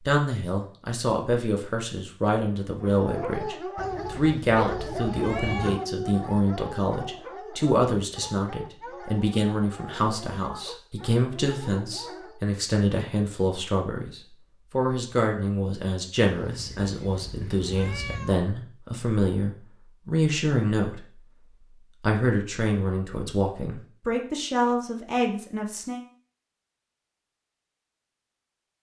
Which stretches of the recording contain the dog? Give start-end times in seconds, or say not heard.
2.8-12.4.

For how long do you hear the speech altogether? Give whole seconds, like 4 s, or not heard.
25 s.